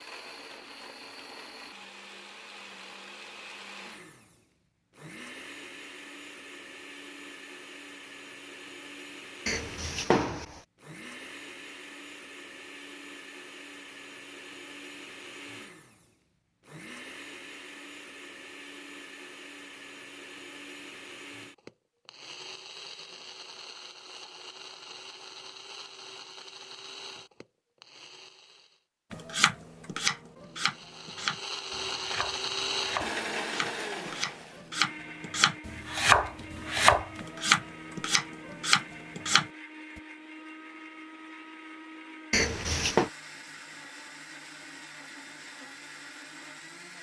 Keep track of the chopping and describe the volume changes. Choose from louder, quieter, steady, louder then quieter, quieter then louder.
quieter then louder.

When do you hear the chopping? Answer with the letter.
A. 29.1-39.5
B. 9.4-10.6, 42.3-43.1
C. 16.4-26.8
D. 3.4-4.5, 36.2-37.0
A.